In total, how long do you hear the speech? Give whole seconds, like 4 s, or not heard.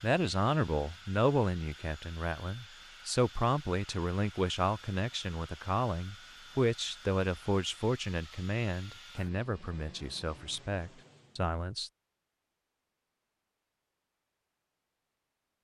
12 s.